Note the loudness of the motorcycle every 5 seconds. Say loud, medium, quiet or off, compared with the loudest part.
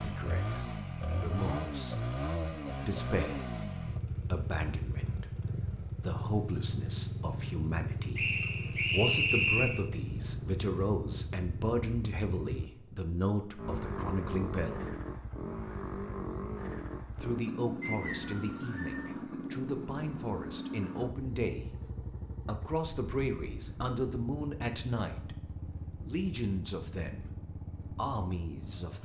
loud, loud, loud, loud, medium, medium.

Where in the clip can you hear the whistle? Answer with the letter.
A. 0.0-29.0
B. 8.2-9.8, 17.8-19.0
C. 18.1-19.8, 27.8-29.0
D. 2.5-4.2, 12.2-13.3
B.